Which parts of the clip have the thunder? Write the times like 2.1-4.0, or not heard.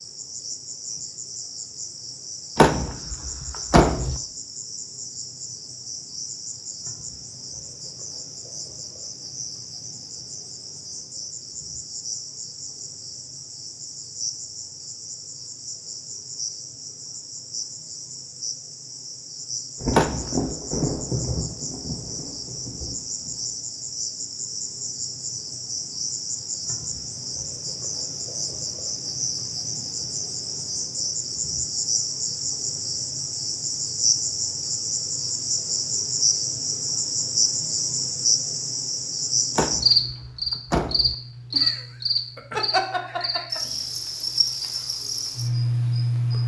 19.8-23.4.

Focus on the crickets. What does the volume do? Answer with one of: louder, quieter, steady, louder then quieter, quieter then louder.
louder.